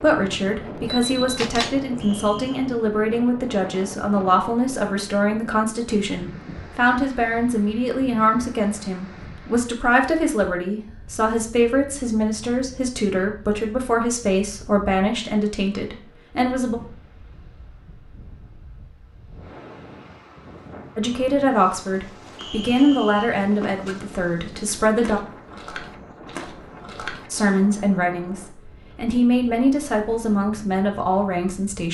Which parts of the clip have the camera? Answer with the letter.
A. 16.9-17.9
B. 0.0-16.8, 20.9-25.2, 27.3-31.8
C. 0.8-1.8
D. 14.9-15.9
C.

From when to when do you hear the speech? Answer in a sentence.
You can hear the speech from 0.0 to 16.8 s, from 20.9 to 25.2 s and from 27.3 to 31.8 s.